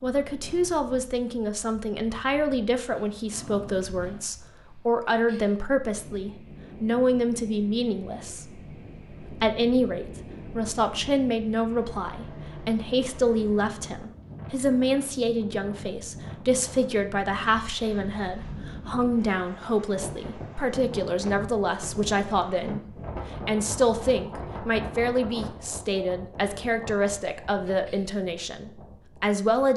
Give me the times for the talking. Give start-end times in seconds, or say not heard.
0.0-29.7.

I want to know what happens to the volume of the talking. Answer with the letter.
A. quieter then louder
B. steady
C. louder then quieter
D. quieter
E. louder
B.